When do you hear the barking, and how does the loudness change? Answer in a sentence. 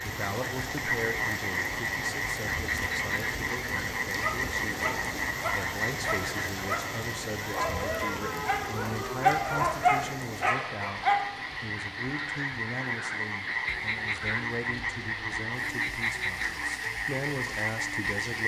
You can hear the barking from 4.2 to 11.2 s, getting louder.